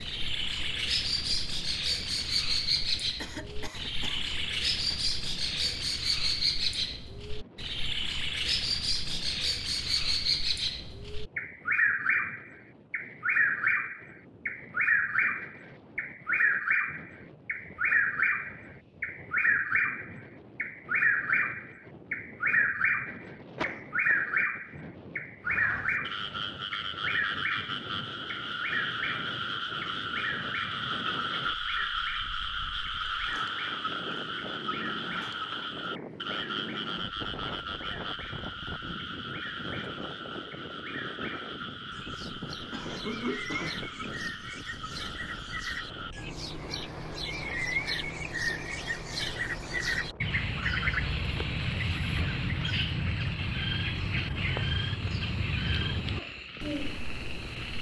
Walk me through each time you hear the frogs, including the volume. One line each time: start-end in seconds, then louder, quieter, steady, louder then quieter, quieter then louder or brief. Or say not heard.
25.4-57.7 quieter.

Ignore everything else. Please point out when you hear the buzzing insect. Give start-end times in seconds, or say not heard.
not heard.